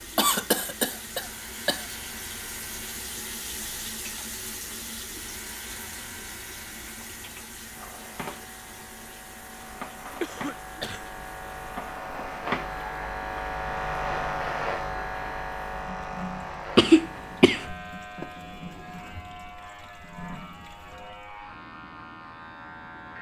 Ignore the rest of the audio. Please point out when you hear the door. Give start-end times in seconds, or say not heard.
18.1-19.6.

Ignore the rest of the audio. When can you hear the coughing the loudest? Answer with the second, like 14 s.
17 s.